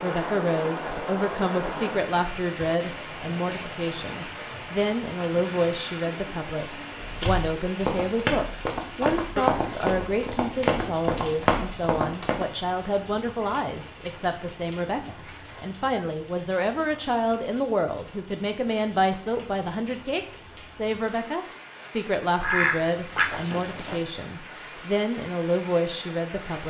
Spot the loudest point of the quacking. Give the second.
23 s.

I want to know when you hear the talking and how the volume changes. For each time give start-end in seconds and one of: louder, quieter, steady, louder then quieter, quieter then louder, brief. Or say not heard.
0.0-26.6 steady.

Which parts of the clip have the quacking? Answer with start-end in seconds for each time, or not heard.
22.4-24.0.